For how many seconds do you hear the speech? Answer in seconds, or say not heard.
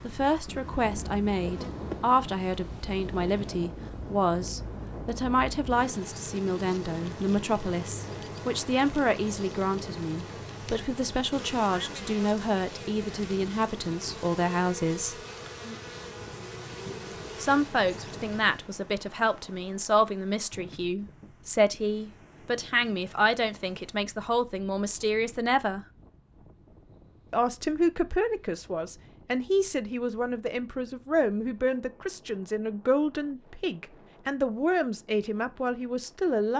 33 s.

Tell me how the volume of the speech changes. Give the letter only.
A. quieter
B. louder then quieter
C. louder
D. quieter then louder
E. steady
E.